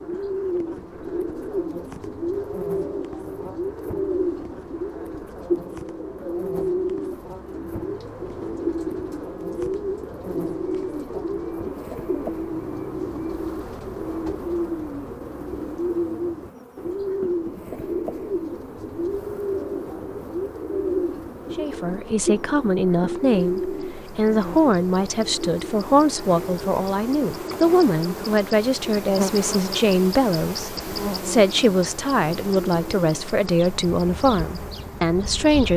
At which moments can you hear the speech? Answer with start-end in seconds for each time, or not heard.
21.6-35.7.